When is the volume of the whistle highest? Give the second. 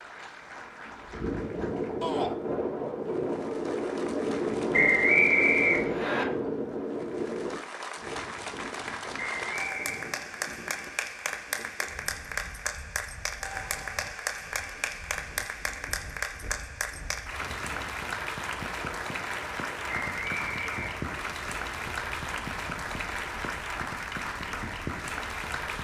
5 s.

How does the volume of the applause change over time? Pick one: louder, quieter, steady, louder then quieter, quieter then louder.
louder.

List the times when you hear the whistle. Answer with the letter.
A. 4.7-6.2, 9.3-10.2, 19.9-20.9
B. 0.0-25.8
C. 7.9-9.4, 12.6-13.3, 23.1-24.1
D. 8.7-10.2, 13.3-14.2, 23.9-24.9
A.